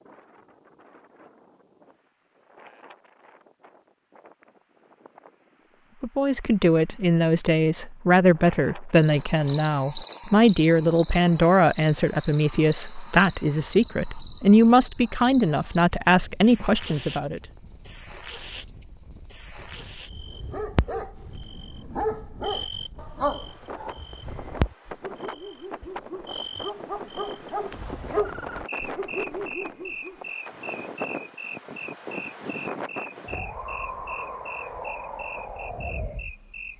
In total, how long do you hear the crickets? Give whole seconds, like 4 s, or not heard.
28 s.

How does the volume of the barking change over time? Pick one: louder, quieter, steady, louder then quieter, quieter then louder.
quieter then louder.